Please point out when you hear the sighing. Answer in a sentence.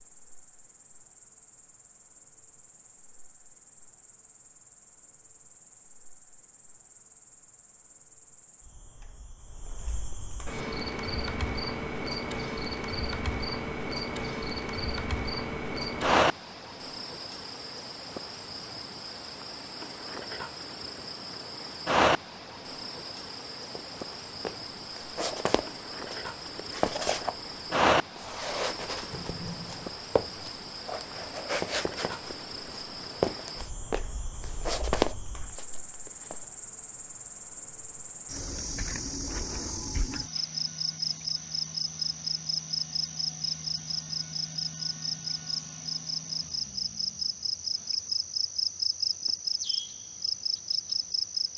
The sighing can be heard from 29.1 to 30.0 s.